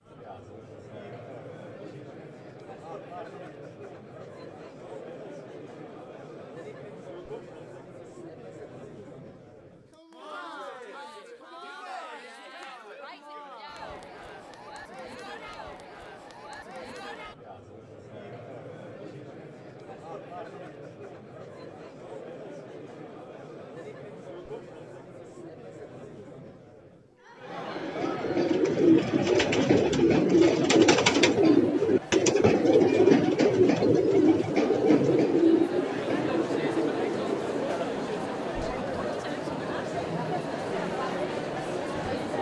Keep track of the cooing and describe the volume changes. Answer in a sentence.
The loudness of the cooing goes down.